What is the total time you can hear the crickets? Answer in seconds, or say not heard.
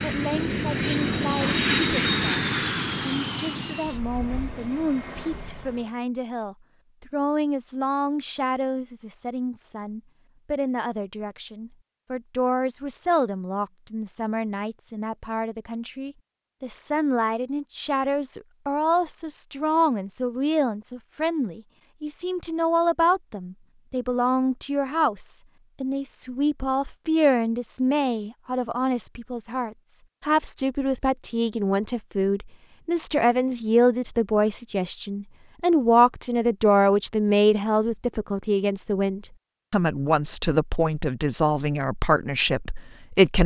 not heard.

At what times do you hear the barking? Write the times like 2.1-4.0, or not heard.
not heard.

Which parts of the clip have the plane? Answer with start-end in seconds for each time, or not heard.
0.0-6.0.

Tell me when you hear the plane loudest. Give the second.
2 s.